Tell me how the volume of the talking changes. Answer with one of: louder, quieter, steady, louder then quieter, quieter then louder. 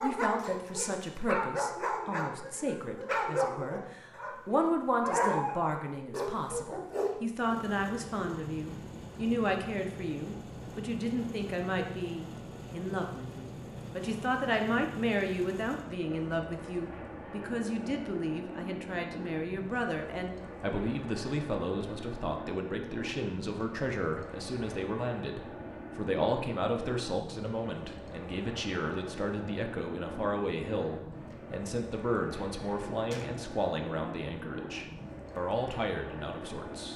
steady.